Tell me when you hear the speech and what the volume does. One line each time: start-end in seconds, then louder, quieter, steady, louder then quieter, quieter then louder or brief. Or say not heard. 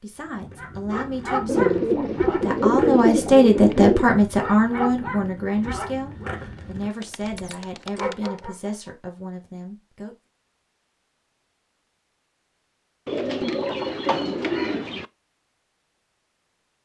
0.0-10.2 louder then quieter.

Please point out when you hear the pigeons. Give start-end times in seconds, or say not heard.
1.4-4.1, 6.5-8.4, 13.1-15.1.